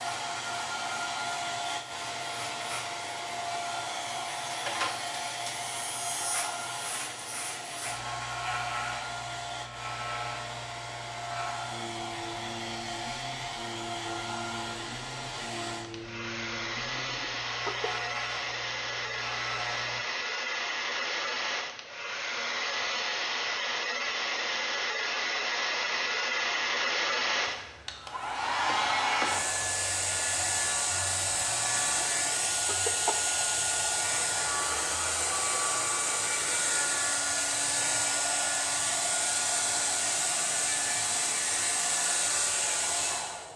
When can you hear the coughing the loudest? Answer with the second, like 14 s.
33 s.